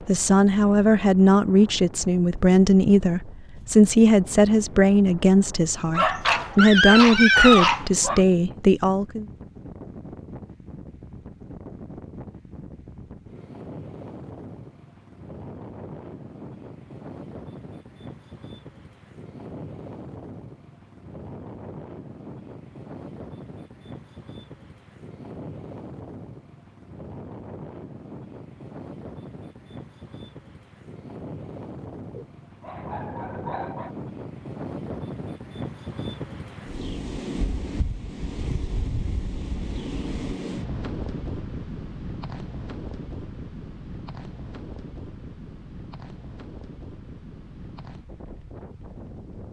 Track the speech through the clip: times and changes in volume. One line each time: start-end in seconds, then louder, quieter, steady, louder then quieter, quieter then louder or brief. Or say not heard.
0.1-9.2 steady.